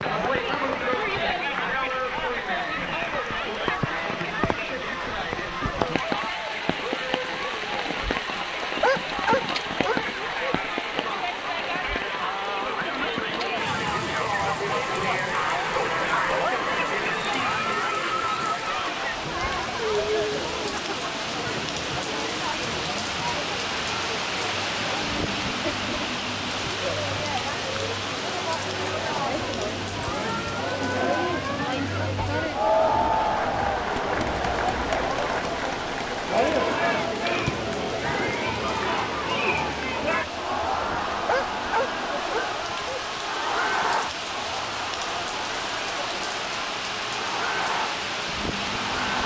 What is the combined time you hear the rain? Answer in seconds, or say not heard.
49 s.